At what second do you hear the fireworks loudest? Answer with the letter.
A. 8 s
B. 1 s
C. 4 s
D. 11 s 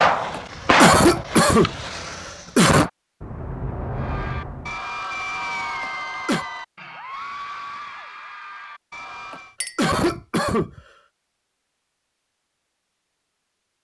B.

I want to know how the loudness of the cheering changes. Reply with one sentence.
The loudness of the cheering goes down.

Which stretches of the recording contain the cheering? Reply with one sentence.
The cheering can be heard from 3.9 to 9.6 s.